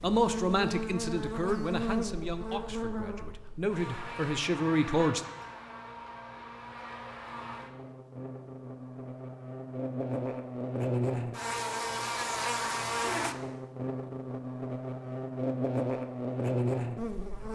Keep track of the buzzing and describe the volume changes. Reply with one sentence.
The loudness of the buzzing goes down, then up.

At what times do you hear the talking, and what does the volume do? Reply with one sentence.
The talking can be heard from 0.0 to 5.2 s, getting quieter then louder.